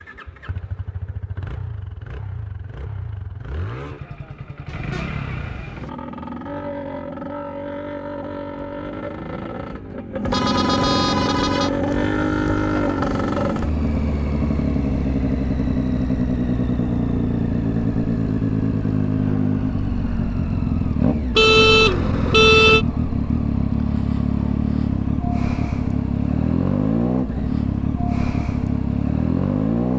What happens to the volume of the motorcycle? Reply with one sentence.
The loudness of the motorcycle goes up.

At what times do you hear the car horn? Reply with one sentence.
You can hear the car horn from 4.7 to 5.9 s, from 10.3 to 11.7 s and from 21.4 to 22.9 s.